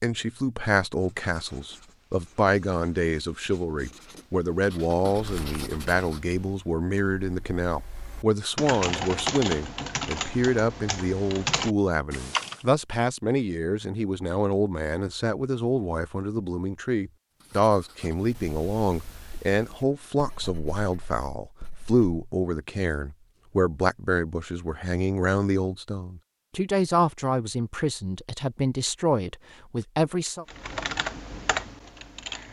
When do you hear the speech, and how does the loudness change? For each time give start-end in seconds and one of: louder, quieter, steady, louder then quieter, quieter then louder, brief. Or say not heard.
0.0-30.4 steady.